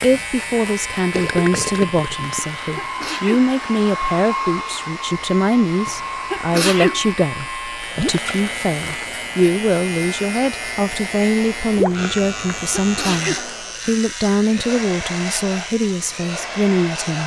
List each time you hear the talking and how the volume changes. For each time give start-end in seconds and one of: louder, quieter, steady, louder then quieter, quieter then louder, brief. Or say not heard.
0.0-17.2 steady.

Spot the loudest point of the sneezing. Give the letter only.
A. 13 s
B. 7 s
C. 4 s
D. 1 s
B.